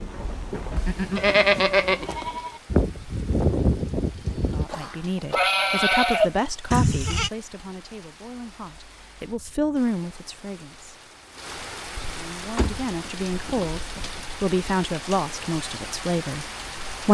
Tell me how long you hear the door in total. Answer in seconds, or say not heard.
2 s.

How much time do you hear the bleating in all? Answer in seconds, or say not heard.
7 s.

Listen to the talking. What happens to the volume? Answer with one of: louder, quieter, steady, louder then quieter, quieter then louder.
quieter then louder.